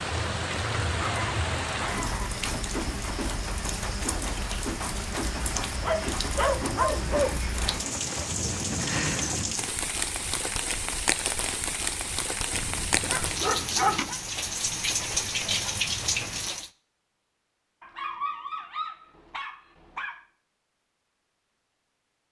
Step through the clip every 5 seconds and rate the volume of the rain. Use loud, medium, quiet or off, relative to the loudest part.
loud, loud, loud, loud, off.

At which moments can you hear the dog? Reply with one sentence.
The dog can be heard from 0.9 to 2.3 s, from 5.8 to 7.4 s, from 12.5 to 14.2 s and from 17.8 to 20.2 s.